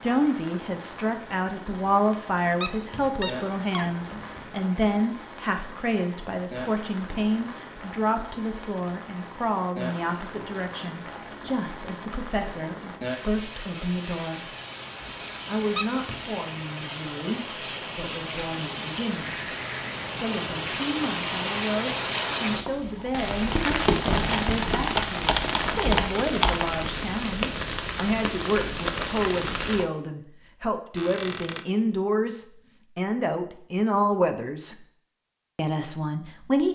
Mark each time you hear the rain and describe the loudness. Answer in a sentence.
The rain can be heard from 0.0 to 29.9 s, getting louder.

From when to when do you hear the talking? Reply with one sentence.
The talking can be heard from 0.0 to 14.5 s, from 15.4 to 19.4 s, from 20.2 to 34.8 s and from 35.5 to 36.6 s.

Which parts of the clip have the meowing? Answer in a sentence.
You can't hear the meowing here.